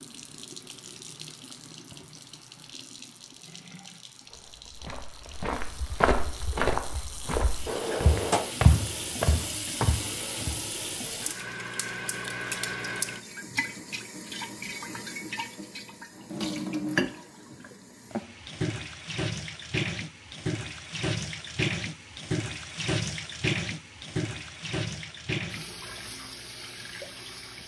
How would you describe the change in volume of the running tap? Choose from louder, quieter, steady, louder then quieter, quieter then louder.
louder.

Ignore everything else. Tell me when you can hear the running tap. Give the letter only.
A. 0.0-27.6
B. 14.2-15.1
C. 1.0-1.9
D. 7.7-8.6
A.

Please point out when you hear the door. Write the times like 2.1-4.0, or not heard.
7.7-8.6.